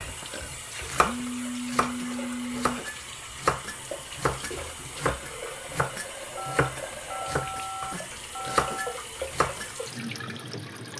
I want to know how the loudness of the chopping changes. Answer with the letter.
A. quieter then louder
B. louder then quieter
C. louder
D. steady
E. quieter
D.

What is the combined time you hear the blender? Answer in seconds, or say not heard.
not heard.